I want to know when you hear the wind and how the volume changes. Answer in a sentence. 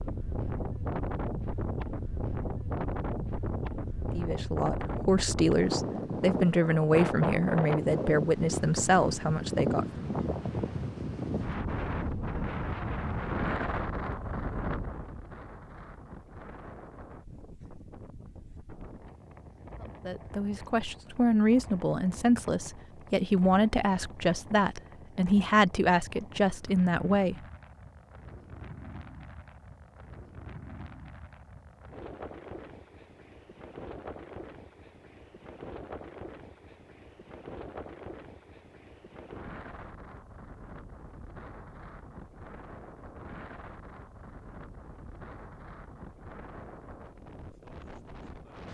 The wind can be heard from 0.0 to 48.6 s, getting quieter.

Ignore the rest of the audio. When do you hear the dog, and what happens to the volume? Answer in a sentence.
You can't hear the dog here.